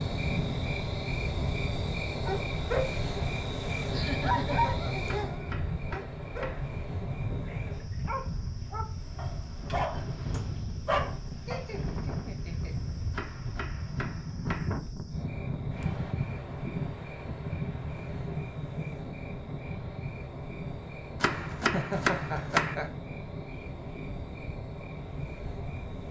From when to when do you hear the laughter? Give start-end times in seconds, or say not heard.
3.9-5.1, 11.4-12.8, 21.6-22.9.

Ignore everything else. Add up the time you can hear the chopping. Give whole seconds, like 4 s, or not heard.
5 s.